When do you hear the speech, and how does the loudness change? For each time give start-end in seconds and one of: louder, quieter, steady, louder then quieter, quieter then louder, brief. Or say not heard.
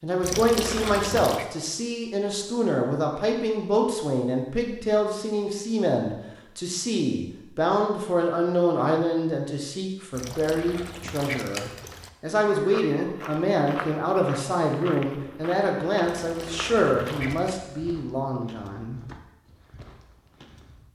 0.0-19.0 steady.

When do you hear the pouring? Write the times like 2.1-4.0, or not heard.
0.2-1.4, 10.1-12.1, 16.1-17.6.